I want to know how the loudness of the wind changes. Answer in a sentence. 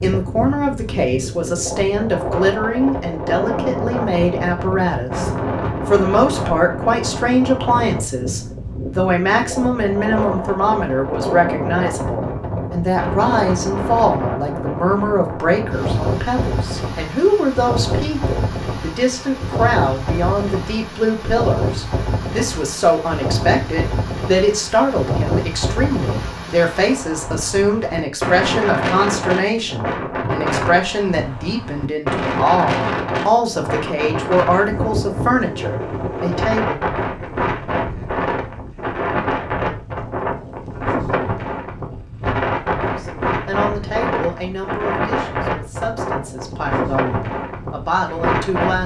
The volume of the wind stays about the same.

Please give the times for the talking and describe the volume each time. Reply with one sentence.
The talking can be heard from 0.0 to 36.8 s, at a steady volume; and from 43.0 to 48.8 s, getting quieter then louder.